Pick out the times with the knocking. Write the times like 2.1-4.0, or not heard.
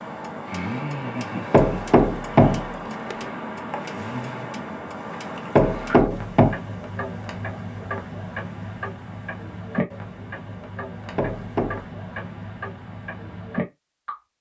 1.5-3.1, 5.5-6.6, 11.2-11.8.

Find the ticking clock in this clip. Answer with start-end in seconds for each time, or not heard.
0.0-14.2.